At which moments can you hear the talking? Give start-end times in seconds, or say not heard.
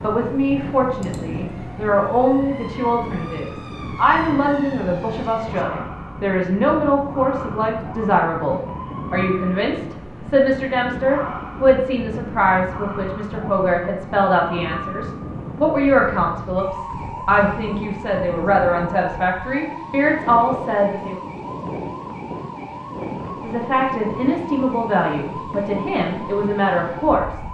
0.0-21.2, 23.4-27.4.